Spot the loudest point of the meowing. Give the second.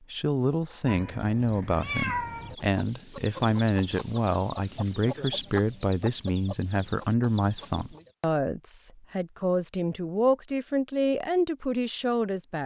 2 s.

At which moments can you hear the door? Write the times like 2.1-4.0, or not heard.
not heard.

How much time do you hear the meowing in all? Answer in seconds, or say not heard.
2 s.